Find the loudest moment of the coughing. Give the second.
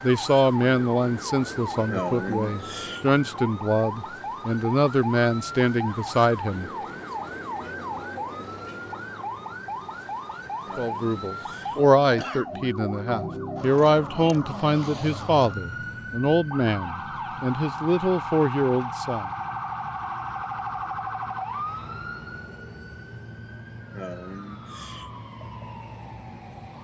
2 s.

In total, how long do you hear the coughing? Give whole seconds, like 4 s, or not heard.
4 s.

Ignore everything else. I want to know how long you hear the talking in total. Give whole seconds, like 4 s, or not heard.
15 s.